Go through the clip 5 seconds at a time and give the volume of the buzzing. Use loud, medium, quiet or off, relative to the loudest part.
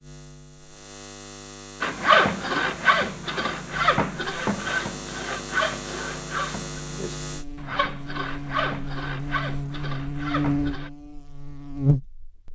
quiet, medium, loud.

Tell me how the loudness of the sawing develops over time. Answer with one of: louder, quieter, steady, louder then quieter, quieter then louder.
quieter.